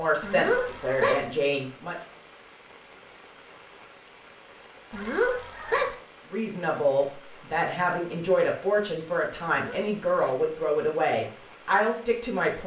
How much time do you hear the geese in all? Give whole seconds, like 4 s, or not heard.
3 s.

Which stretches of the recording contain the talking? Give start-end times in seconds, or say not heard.
0.0-1.9, 6.3-12.6.